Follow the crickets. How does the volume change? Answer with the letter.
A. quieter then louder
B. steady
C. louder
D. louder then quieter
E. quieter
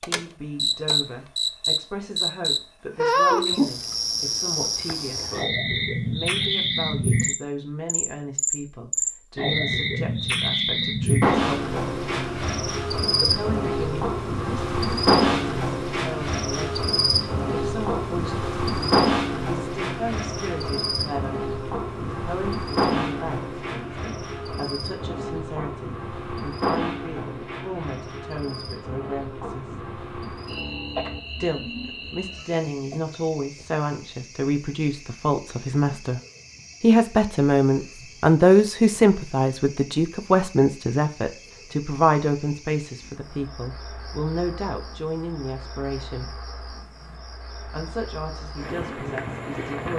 E.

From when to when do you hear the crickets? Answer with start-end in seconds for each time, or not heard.
0.0-49.9.